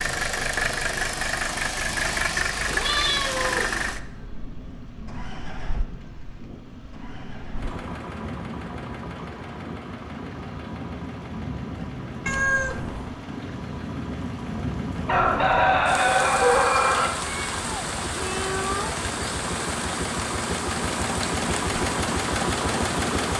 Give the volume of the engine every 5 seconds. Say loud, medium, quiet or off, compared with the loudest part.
loud, quiet, quiet, medium, loud.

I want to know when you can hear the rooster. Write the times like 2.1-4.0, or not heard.
15.1-17.1.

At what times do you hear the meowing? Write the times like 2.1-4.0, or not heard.
2.5-3.9, 12.2-13.2, 17.1-19.1.